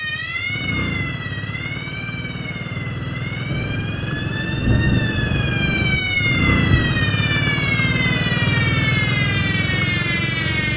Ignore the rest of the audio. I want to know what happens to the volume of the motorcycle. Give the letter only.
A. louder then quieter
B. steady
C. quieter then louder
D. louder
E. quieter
D.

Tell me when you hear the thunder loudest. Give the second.
5 s.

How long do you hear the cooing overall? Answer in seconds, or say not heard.
not heard.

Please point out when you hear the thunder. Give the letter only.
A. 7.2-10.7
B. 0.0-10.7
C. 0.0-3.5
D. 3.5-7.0
D.